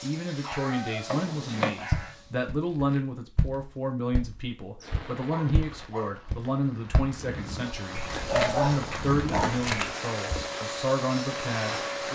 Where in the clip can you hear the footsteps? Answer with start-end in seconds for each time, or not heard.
1.1-10.4.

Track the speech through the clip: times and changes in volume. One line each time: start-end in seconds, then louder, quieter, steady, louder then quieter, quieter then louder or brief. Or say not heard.
0.0-12.1 steady.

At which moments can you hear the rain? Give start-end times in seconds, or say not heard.
4.8-12.1.